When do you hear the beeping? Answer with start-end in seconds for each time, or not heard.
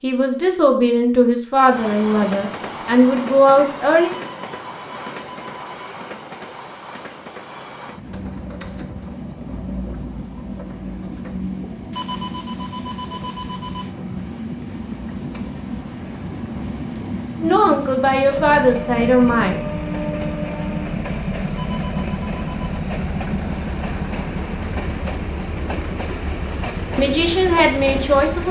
4.0-6.0, 11.9-13.9, 21.6-22.8.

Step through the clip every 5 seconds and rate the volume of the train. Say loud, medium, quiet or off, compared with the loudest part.
medium, medium, medium, loud, loud, loud.